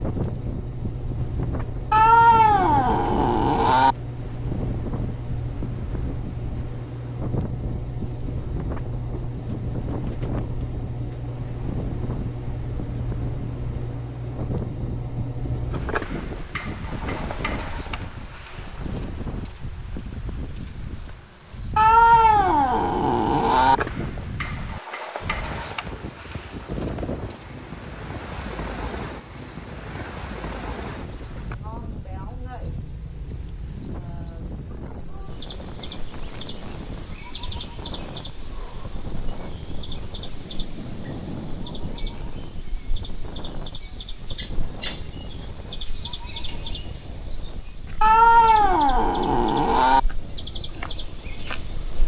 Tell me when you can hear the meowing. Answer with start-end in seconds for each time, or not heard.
1.9-4.0, 21.8-23.8, 48.0-50.0.